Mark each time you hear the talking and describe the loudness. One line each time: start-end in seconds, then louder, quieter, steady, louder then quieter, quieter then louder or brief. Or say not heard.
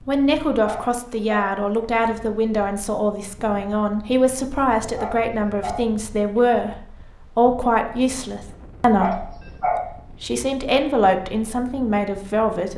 0.1-12.7 steady.